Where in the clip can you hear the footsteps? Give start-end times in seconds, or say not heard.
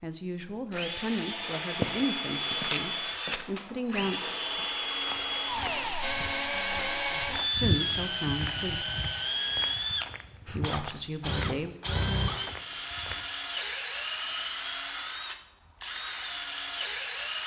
1.6-13.3.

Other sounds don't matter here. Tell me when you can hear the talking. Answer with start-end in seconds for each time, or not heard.
0.0-4.2, 7.5-8.8, 10.4-11.7.